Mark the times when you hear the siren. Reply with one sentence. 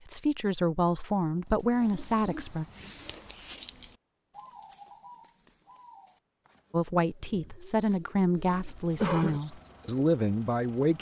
You can't hear the siren here.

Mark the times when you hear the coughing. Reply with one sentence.
The coughing can be heard from 8.5 to 9.4 s.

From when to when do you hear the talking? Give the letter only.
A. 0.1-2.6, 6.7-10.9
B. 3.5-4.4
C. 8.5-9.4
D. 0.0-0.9
A.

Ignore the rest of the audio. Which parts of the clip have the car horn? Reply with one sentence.
The car horn can't be heard in this clip.